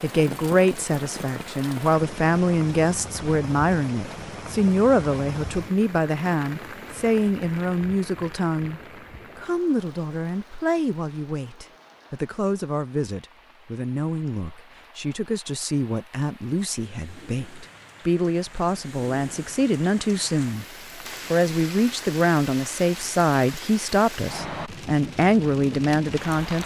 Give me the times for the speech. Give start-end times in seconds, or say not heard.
0.0-20.6, 21.3-26.6.